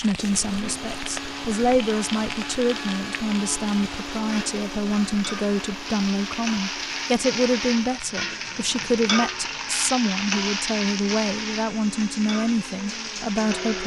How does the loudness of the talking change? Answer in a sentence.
The volume of the talking stays about the same.